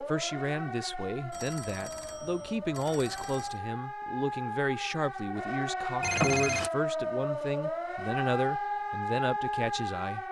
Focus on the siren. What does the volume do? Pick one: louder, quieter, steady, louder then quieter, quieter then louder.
louder.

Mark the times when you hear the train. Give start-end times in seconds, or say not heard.
not heard.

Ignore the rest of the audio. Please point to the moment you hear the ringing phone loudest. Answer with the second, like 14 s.
6 s.